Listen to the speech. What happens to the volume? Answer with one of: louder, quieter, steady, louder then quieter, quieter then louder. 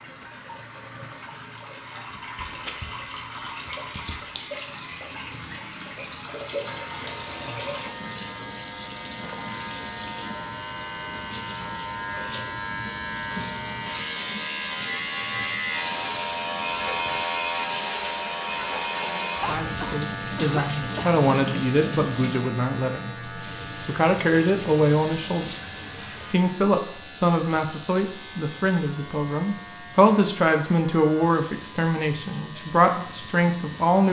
steady.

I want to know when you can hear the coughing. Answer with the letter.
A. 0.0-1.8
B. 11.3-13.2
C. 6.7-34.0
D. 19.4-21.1
D.